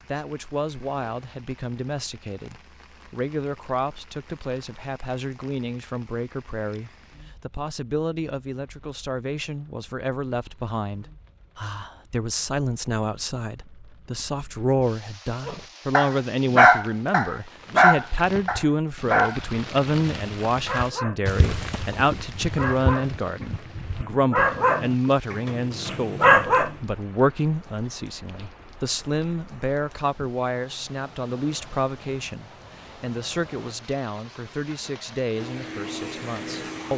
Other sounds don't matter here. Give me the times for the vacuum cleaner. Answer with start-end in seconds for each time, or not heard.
35.3-36.9.